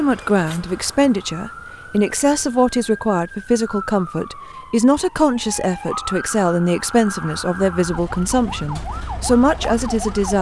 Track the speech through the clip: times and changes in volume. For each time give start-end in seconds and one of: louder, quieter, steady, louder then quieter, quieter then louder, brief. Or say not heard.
0.0-10.3 steady.